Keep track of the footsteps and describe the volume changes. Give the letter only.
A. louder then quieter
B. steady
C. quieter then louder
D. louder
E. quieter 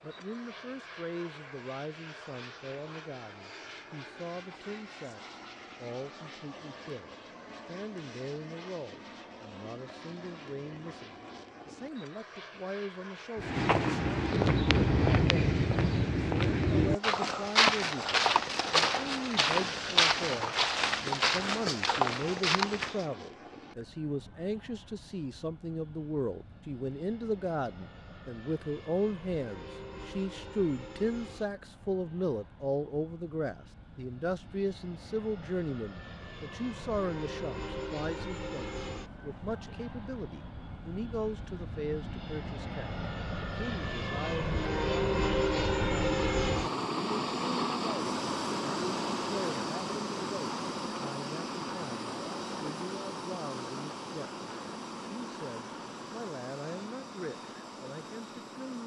B.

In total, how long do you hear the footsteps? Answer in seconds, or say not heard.
10 s.